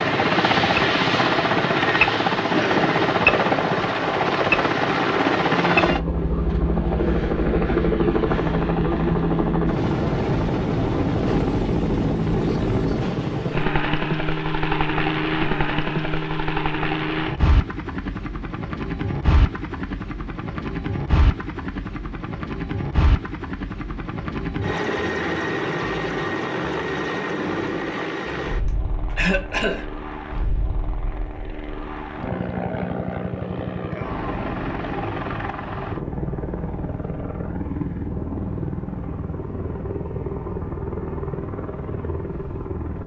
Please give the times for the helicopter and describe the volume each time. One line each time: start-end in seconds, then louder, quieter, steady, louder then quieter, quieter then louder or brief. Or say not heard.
0.0-43.0 quieter.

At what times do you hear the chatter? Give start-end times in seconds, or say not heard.
not heard.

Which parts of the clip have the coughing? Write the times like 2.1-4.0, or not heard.
2.5-3.0, 28.6-29.9.